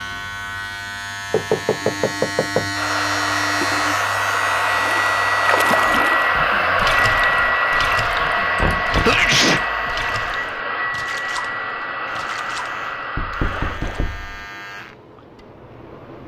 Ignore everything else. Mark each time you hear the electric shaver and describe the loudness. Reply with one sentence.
The electric shaver can be heard from 0.0 to 16.2 s, getting quieter.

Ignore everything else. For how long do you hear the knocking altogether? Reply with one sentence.
The knocking can be heard for 3 seconds in total.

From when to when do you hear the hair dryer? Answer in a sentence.
You can hear the hair dryer from 2.7 to 13.8 s.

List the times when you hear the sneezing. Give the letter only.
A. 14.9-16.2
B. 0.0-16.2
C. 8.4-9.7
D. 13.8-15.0
C.